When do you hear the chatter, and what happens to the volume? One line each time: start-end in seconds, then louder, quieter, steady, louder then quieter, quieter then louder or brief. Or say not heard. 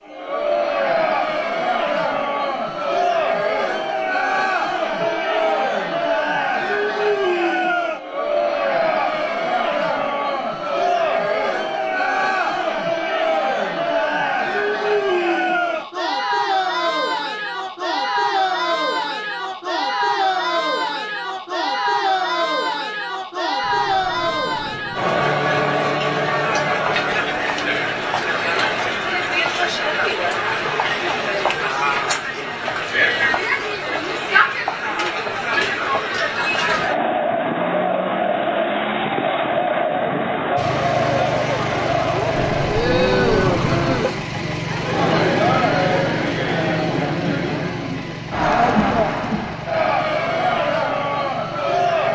0.1-52.1 steady.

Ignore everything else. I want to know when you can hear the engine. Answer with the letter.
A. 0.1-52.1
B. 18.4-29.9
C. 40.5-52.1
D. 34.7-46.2
C.